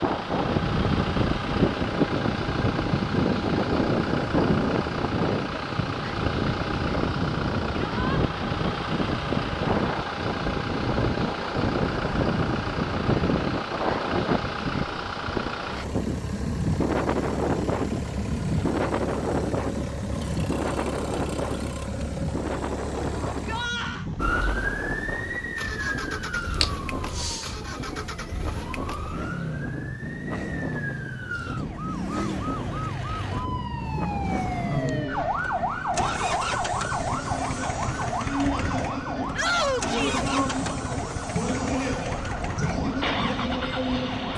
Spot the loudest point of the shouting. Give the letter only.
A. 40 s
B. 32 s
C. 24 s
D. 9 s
A.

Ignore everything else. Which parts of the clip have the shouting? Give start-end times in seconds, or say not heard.
7.7-8.2, 23.3-24.1, 39.4-40.2.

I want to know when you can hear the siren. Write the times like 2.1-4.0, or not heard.
24.1-44.3.